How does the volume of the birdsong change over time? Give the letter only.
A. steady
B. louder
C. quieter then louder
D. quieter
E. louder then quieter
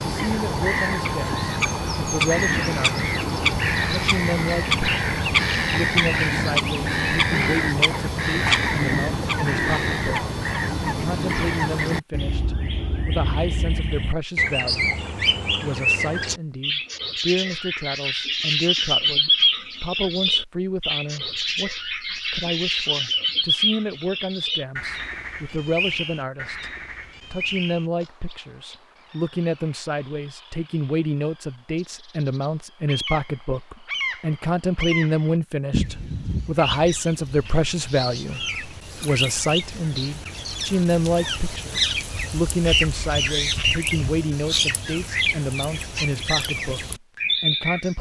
C.